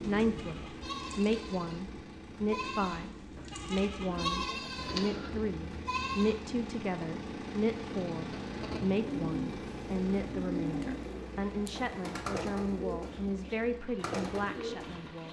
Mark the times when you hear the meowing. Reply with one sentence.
You can't hear the meowing here.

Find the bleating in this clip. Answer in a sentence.
The bleating can be heard from 0.3 to 6.5 s.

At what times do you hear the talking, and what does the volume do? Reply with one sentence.
You can hear the talking from 0.0 to 15.2 s, at a steady volume.